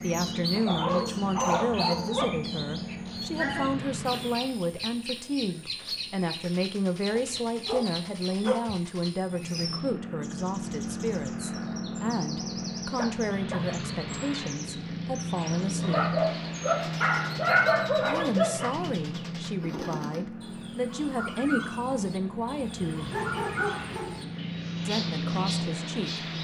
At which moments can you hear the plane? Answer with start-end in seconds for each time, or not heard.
0.0-4.6, 9.2-26.3.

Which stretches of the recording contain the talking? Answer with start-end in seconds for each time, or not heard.
0.0-16.1, 18.0-23.2, 24.9-26.3.